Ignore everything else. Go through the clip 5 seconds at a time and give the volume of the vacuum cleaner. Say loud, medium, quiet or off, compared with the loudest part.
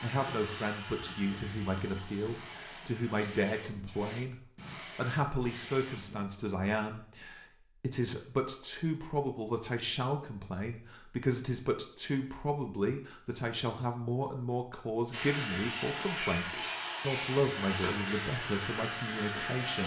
medium, off, off, loud.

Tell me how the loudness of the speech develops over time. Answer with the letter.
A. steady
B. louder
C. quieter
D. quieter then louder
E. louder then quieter
A.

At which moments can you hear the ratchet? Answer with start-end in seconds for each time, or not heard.
not heard.